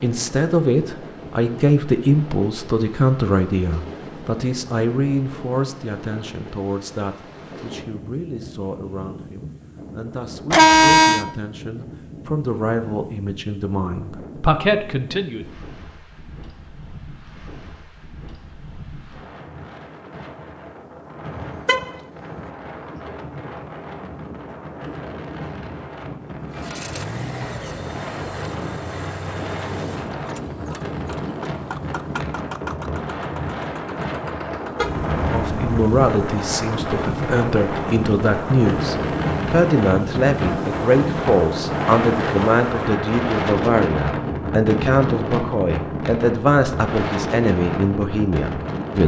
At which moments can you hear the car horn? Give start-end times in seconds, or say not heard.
10.5-11.2, 21.2-21.9, 34.8-36.0.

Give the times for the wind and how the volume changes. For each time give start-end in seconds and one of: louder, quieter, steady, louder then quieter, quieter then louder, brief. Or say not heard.
0.0-49.0 louder.